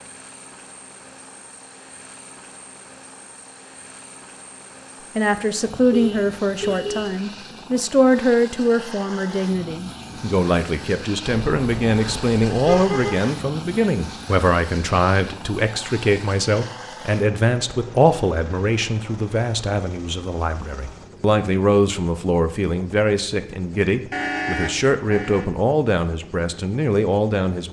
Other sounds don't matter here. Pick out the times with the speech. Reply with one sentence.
You can hear the speech from 5.2 to 27.6 s.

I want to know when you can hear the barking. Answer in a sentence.
The barking can't be heard in this clip.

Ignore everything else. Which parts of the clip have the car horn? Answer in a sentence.
You can hear the car horn from 5.9 to 7.2 s, from 11.2 to 13.2 s and from 24.1 to 25.4 s.